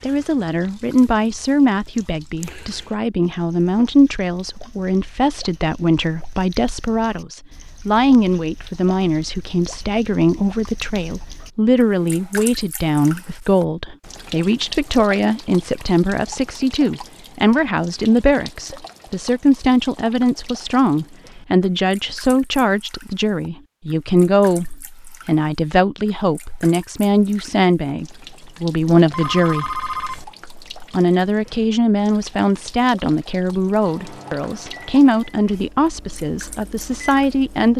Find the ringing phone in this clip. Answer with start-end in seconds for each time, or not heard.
29.1-30.2.